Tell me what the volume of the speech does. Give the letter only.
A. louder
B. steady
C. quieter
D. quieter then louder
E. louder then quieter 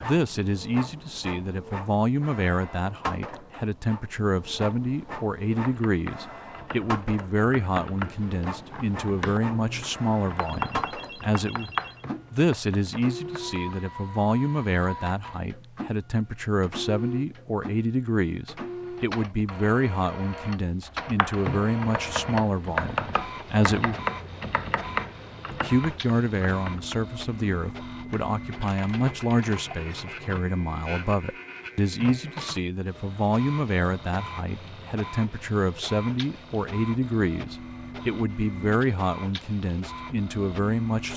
B.